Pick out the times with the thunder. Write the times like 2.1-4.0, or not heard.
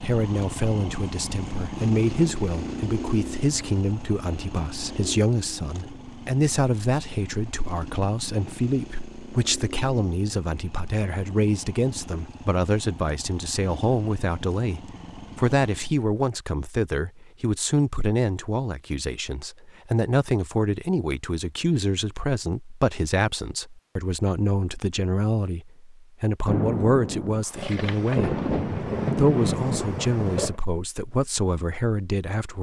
26.4-30.6.